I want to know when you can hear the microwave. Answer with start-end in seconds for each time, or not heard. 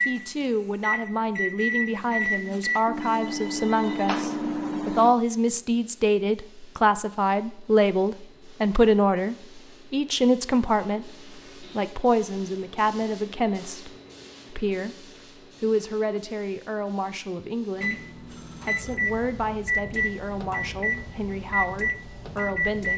0.0-5.2, 17.8-22.9.